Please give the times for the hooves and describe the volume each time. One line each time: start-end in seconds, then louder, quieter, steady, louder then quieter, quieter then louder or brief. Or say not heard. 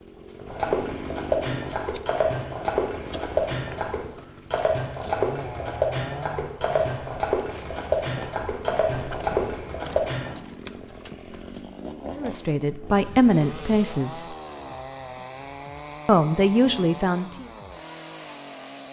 0.5-10.3 steady.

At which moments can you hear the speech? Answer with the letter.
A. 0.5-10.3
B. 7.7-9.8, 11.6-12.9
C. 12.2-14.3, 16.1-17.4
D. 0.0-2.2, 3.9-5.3
C.